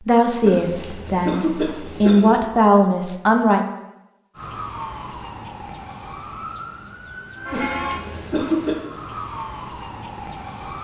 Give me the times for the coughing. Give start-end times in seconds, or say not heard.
0.4-2.4, 7.5-8.8.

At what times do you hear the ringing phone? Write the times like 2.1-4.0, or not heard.
not heard.